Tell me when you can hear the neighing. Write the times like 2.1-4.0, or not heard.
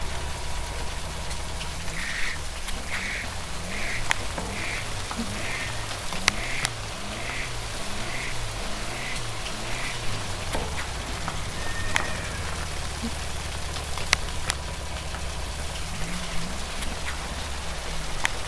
3.9-5.9, 10.0-12.8.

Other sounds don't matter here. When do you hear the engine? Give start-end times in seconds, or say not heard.
0.0-18.4.